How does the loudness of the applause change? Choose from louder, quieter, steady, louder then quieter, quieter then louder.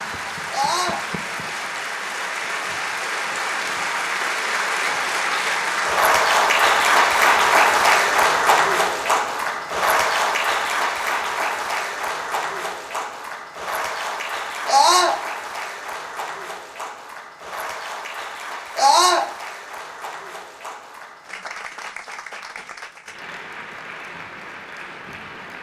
louder then quieter.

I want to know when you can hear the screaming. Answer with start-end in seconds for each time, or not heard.
0.5-1.0, 14.7-15.2, 18.8-19.2.